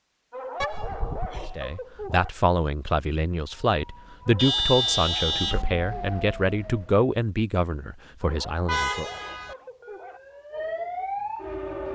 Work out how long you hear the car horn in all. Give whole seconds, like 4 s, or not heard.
4 s.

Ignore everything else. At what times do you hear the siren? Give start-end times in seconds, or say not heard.
3.6-7.1, 9.3-11.9.